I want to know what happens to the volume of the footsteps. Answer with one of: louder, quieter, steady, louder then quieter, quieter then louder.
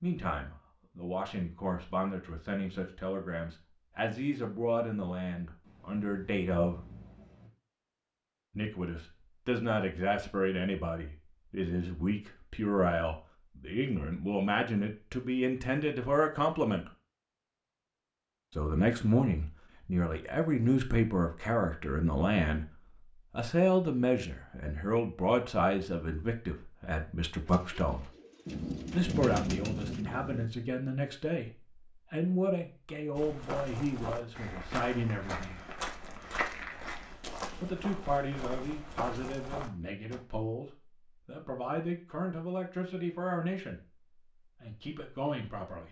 steady.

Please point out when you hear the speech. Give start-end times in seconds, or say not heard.
0.0-6.8, 8.6-16.9, 18.6-22.6, 23.3-28.1, 28.9-35.6, 37.6-45.8.